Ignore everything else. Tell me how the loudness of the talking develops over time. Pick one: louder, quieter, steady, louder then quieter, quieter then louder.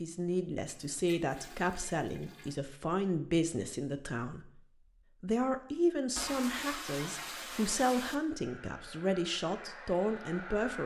steady.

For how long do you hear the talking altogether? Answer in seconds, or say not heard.
10 s.